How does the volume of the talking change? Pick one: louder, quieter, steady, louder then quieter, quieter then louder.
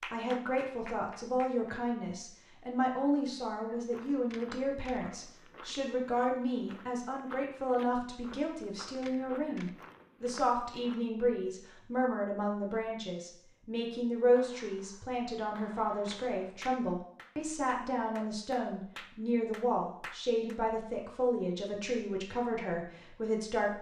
steady.